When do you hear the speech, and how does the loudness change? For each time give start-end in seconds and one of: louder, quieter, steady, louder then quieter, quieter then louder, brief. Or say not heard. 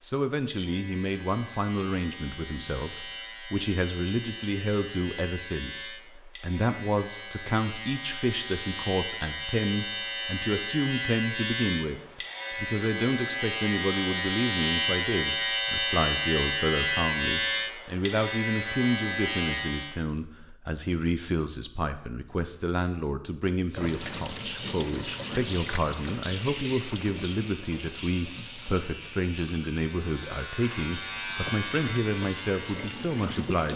0.0-33.7 steady.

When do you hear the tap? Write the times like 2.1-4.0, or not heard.
23.8-33.7.